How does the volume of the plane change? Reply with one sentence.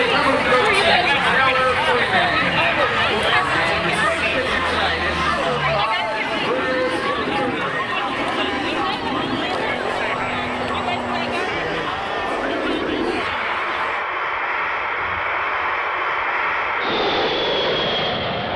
The volume of the plane goes up.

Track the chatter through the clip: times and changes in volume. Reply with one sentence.
You can hear the chatter from 0.0 to 14.1 s, getting quieter.